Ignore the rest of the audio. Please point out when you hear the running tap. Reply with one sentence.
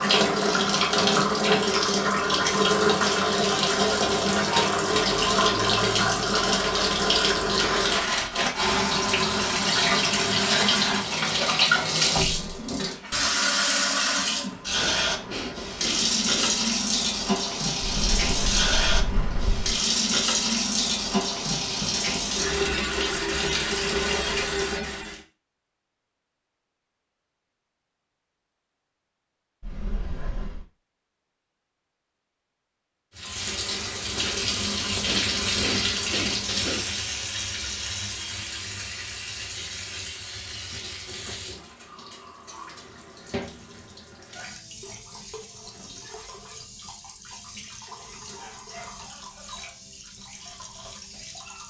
The running tap can be heard from 0.0 to 25.2 s and from 33.1 to 51.6 s.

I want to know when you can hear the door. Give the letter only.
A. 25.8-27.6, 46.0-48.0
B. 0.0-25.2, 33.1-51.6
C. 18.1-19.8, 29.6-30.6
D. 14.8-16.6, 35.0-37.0
C.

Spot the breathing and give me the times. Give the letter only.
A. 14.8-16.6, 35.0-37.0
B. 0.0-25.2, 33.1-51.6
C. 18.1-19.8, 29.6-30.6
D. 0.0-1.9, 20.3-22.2
A.